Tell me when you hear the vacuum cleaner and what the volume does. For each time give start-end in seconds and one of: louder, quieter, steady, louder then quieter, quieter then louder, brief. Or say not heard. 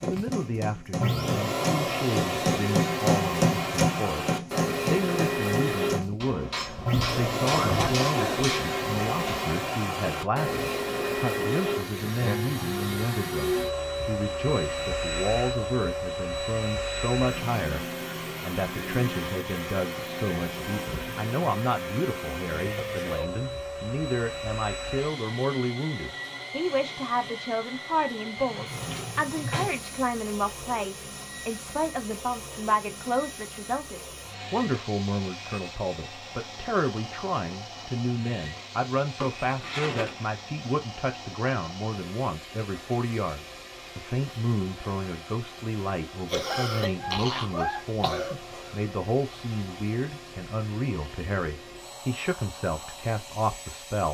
0.0-54.0 quieter.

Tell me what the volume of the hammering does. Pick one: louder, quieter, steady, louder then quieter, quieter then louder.
louder then quieter.